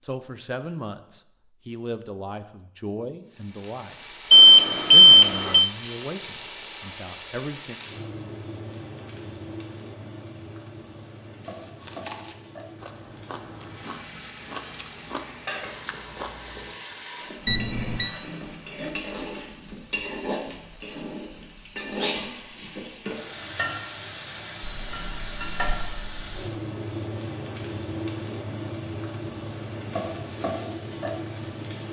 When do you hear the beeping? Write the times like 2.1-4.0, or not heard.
4.3-5.7, 17.4-18.1, 24.6-26.5.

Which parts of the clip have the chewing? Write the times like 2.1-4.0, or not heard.
11.6-16.8.